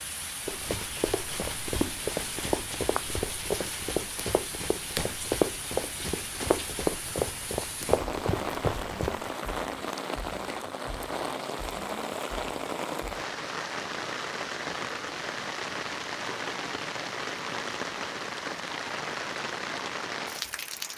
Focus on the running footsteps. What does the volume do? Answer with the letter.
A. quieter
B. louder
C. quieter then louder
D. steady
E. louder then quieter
D.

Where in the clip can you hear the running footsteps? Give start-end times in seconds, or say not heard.
0.5-9.3.